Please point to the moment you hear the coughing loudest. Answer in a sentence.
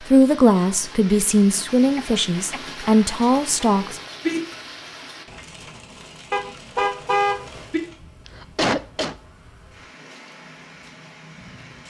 The volume of the coughing peaks at 9 seconds.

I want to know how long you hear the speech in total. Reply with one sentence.
The speech can be heard for 4 seconds in total.